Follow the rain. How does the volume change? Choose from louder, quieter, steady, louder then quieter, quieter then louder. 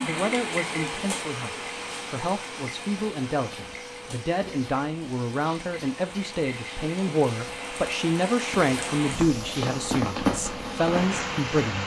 quieter then louder.